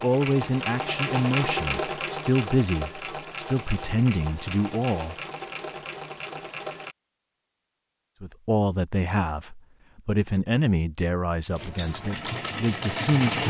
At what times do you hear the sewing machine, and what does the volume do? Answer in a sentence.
The sewing machine can be heard from 0.0 to 7.0 s, getting quieter; and briefly from 11.5 to 13.4 s.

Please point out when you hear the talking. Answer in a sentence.
The talking can be heard from 0.0 to 5.2 s and from 8.2 to 13.4 s.